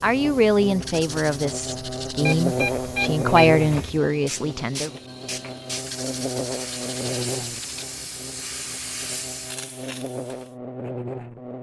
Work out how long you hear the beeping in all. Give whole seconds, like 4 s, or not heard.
2 s.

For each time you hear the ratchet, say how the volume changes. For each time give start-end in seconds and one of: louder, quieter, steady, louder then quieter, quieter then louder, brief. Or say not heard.
not heard.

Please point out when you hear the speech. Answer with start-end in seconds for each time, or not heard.
0.0-4.9.